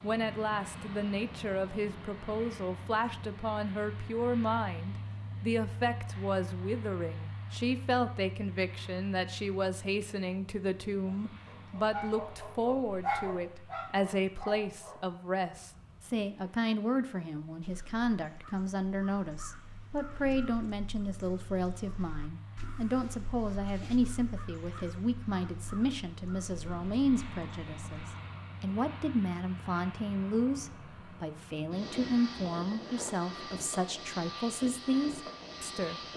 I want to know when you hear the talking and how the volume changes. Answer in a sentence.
You can hear the talking from 0.0 to 36.0 s, at a steady volume.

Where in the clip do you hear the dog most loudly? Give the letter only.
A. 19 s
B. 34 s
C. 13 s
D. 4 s
C.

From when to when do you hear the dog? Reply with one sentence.
You can hear the dog from 11.1 to 16.2 s.